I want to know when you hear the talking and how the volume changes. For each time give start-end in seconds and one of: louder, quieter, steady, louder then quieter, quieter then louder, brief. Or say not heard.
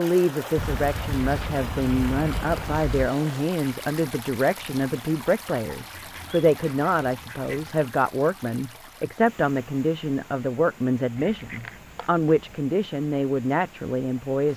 0.0-14.5 steady.